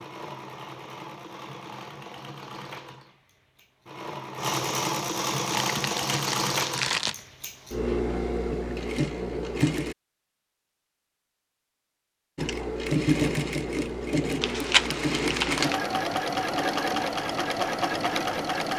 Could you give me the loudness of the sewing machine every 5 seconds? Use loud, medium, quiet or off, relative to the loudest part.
medium, loud, loud, loud.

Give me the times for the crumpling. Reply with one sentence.
The crumpling can be heard from 5.5 to 7.2 s and from 14.4 to 15.8 s.